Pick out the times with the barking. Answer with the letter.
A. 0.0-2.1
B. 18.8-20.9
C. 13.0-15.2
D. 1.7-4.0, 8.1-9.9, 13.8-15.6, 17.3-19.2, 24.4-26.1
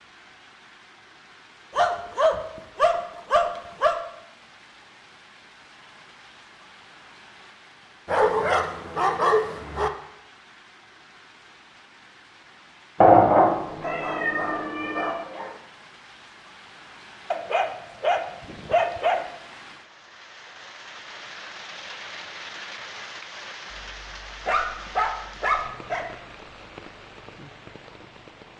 D.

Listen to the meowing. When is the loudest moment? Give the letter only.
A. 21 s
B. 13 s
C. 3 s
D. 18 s
B.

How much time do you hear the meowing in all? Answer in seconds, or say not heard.
2 s.